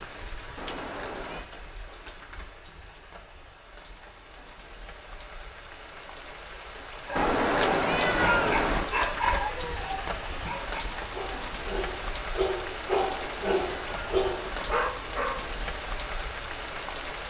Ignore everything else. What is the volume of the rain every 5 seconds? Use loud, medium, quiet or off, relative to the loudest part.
medium, loud, loud, loud.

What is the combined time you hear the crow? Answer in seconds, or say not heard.
not heard.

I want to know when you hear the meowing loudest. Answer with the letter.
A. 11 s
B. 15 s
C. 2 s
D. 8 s
D.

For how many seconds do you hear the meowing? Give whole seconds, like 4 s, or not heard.
5 s.